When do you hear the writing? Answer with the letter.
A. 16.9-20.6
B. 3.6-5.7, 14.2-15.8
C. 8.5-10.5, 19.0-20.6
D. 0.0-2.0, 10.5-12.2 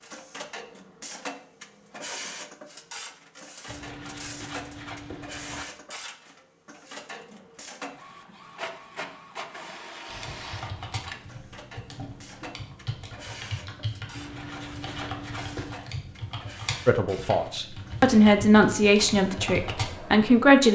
B.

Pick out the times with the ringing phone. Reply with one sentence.
You can't hear the ringing phone here.